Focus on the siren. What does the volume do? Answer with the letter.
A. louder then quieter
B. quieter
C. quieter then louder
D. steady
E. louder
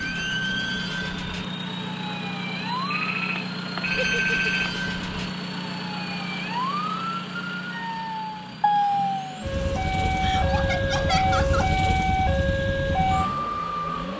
E.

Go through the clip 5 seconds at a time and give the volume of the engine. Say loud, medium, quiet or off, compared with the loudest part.
loud, loud, medium.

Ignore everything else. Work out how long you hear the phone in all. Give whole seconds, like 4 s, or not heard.
2 s.